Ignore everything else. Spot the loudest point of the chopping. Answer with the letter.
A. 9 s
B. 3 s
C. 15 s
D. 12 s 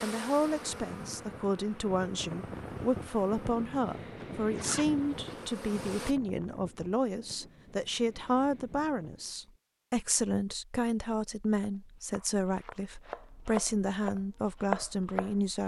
C.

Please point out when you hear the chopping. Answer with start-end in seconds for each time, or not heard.
11.1-15.6.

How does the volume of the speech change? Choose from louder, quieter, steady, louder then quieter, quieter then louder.
steady.